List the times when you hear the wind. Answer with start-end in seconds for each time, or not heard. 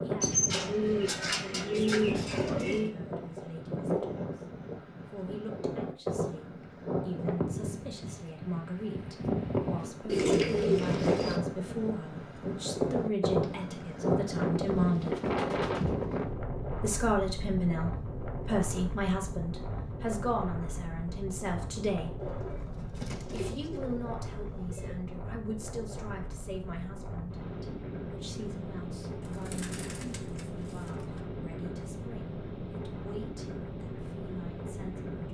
0.0-35.2.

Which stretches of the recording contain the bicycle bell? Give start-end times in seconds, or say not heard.
not heard.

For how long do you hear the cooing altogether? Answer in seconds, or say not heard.
10 s.